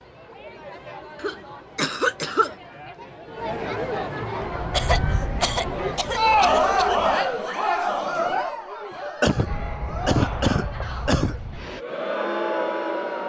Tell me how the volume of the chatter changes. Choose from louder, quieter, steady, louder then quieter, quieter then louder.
louder then quieter.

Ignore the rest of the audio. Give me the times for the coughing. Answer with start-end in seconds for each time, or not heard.
1.2-2.5, 4.7-7.2, 9.2-11.3.